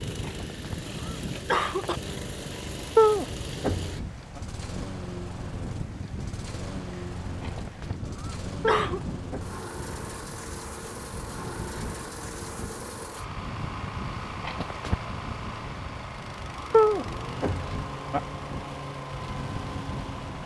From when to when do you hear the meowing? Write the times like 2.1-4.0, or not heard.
3.0-4.4, 8.7-9.6, 16.7-18.2.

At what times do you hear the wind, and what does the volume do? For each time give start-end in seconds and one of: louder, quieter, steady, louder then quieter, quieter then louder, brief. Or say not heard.
0.0-20.4 steady.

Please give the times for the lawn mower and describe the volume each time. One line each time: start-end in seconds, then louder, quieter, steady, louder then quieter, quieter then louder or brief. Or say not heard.
0.0-20.4 steady.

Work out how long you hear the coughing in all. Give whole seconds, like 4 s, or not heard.
4 s.